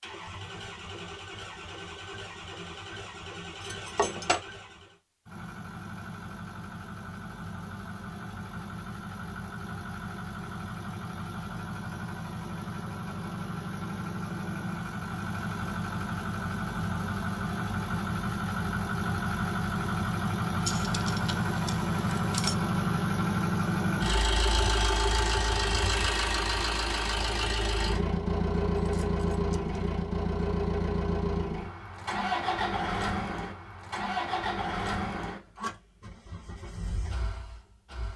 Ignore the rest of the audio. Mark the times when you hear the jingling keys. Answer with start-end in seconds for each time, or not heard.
3.6-4.5, 20.6-22.6, 28.8-29.9.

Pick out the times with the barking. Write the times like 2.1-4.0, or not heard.
not heard.